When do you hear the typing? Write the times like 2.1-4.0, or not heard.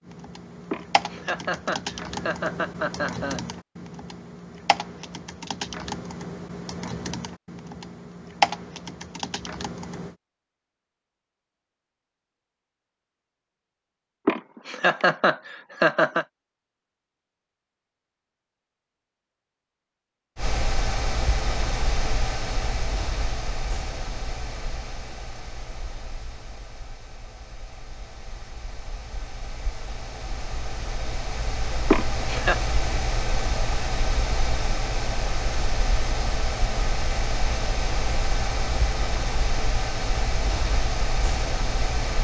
0.0-10.2.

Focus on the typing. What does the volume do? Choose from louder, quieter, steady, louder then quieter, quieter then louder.
louder.